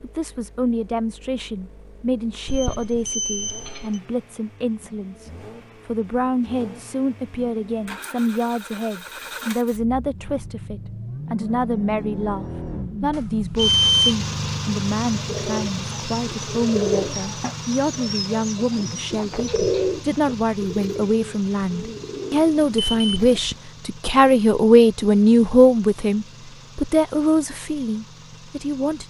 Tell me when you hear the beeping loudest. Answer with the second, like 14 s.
14 s.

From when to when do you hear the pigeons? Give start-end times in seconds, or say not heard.
15.2-23.4.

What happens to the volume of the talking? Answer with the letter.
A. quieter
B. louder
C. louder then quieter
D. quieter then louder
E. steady
B.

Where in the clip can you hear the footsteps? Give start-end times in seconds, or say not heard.
not heard.